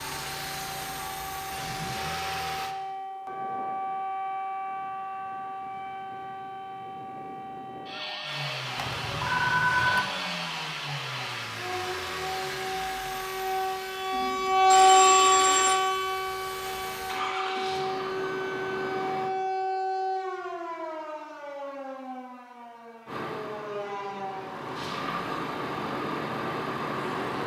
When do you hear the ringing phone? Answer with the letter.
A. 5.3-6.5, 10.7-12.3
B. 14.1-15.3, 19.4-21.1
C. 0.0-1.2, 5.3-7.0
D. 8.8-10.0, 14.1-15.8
D.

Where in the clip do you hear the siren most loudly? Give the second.
15 s.